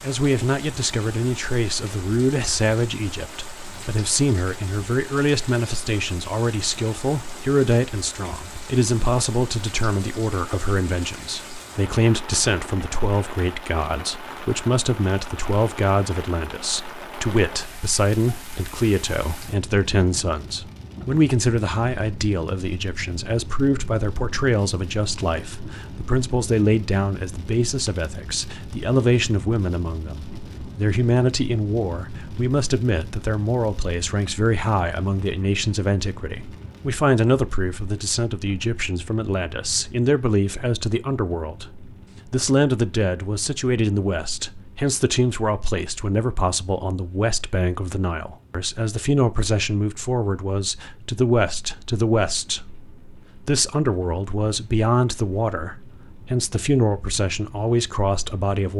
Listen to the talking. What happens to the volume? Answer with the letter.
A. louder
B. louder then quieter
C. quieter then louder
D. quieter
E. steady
E.